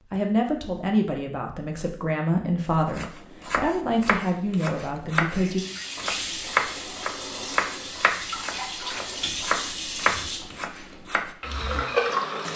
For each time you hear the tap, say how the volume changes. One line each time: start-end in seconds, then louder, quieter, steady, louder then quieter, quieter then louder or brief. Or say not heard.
5.5-12.5 louder.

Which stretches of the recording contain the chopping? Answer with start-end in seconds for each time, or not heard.
2.8-11.3.